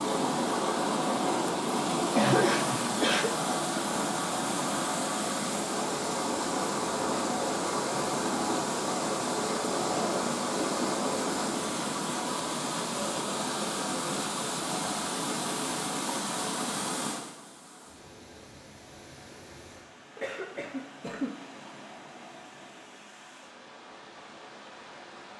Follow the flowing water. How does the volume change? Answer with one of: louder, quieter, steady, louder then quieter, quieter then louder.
quieter.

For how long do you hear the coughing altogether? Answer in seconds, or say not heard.
2 s.